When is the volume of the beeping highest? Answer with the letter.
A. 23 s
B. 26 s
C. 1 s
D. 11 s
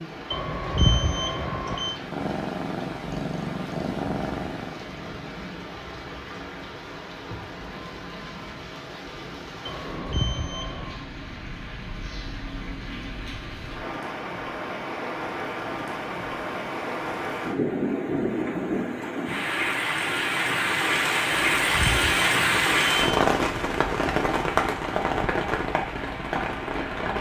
C.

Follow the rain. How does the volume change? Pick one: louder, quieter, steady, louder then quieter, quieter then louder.
louder.